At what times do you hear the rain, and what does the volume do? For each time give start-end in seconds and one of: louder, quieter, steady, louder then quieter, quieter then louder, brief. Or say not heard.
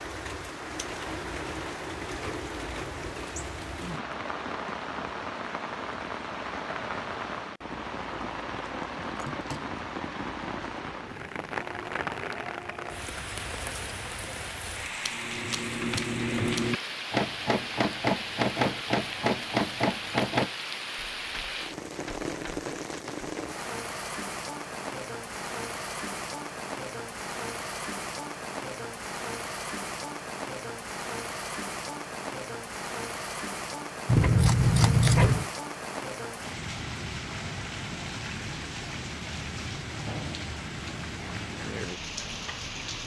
0.0-43.0 steady.